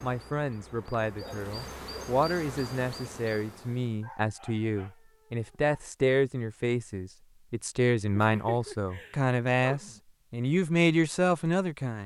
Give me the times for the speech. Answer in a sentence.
The speech can be heard from 0.0 to 12.0 s.